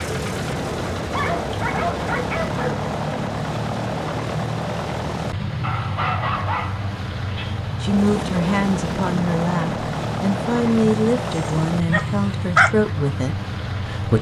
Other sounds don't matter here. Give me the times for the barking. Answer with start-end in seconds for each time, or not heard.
1.0-2.8, 5.6-7.6, 11.9-12.7.